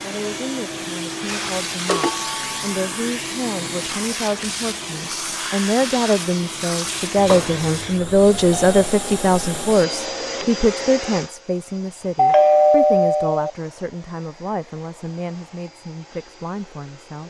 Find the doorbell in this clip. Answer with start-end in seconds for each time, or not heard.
1.9-2.9, 7.2-8.9, 12.2-13.5.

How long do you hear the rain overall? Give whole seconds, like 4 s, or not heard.
not heard.